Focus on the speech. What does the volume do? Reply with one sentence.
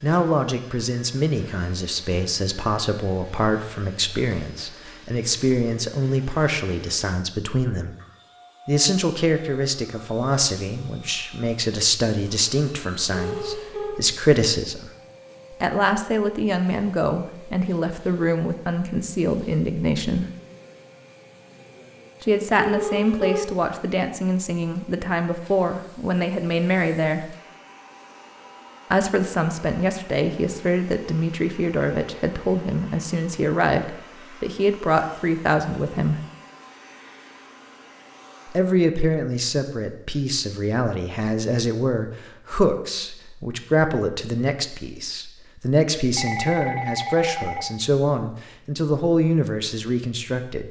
The loudness of the speech stays about the same.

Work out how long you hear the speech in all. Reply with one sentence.
The speech can be heard for 43 seconds in total.